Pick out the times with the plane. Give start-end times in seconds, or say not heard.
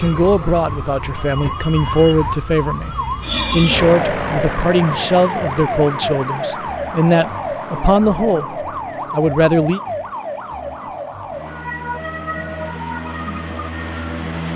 3.2-14.5.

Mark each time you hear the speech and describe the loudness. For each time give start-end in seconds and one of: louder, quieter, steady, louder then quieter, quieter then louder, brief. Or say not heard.
0.0-9.8 steady.